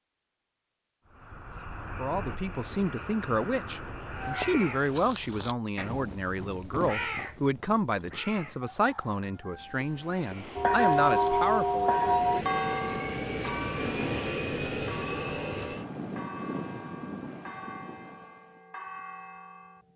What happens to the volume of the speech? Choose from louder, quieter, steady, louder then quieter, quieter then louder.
steady.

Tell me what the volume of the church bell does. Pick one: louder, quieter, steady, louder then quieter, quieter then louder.
quieter.